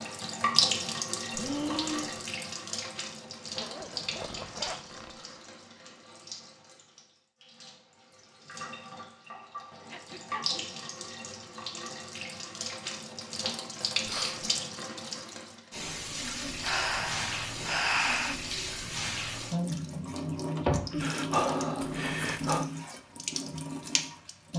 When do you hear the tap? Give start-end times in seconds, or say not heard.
0.0-24.5.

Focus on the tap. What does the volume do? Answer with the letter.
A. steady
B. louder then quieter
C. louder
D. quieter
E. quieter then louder
E.